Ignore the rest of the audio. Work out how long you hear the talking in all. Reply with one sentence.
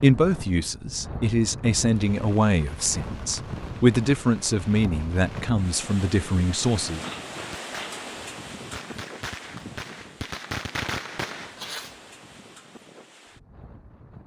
You can hear the talking for 7 seconds altogether.